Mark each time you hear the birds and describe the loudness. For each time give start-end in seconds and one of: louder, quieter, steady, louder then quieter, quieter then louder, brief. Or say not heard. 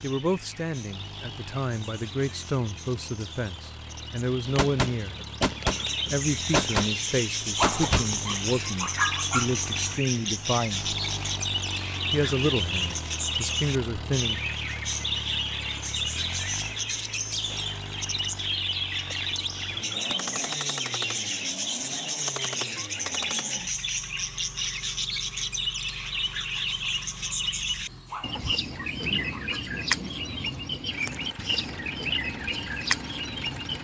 0.0-33.7 louder.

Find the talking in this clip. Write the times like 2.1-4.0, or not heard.
0.0-5.2, 6.1-10.9, 12.1-14.4.